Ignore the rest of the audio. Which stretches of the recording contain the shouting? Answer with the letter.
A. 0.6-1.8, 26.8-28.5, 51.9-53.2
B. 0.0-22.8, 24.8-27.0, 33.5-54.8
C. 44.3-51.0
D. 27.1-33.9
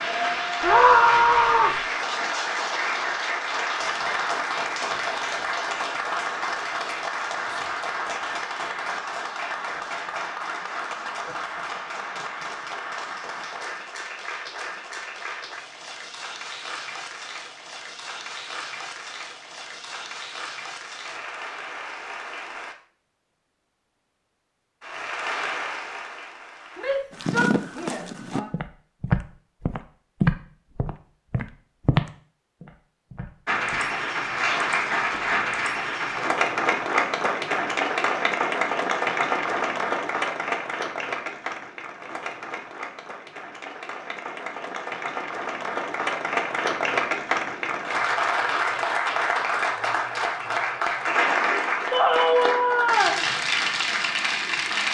A.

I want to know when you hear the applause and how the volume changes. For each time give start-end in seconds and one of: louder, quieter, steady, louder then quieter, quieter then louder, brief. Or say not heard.
0.0-22.8 quieter
24.8-27.0 brief
33.5-54.8 quieter then louder.